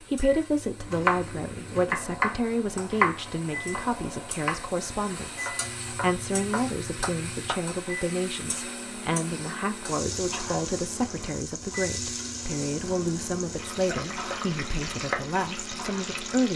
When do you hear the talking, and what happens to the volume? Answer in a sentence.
You can hear the talking from 0.0 to 16.5 s, at a steady volume.